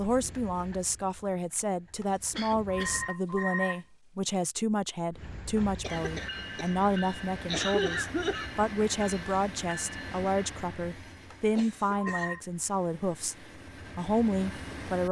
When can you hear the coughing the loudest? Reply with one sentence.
The volume of the coughing peaks at 8 seconds.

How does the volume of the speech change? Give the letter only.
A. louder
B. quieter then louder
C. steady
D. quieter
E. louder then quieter
C.